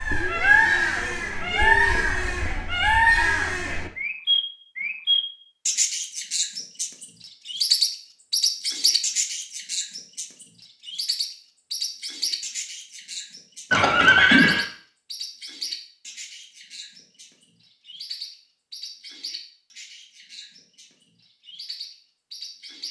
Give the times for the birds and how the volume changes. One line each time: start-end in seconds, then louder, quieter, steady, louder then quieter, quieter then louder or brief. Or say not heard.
0.0-22.8 quieter.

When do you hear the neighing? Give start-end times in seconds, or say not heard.
13.7-14.7.